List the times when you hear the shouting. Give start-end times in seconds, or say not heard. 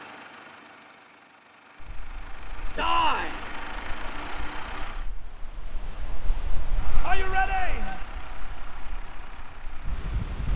2.8-3.4, 7.0-8.1.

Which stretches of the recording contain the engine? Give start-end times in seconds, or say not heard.
0.0-5.1, 6.7-10.3.